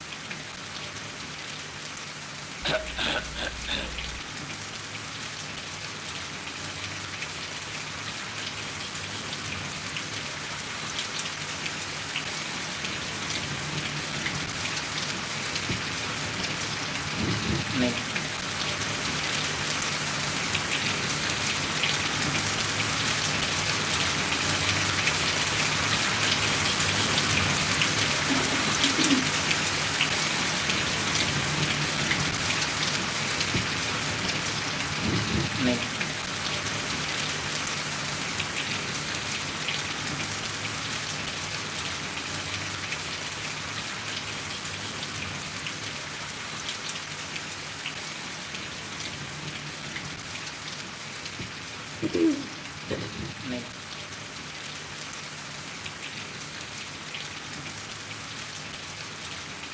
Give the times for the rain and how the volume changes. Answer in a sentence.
You can hear the rain from 0.0 to 59.6 s, getting louder then quieter.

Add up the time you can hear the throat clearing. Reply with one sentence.
The throat clearing can be heard for 4 seconds in total.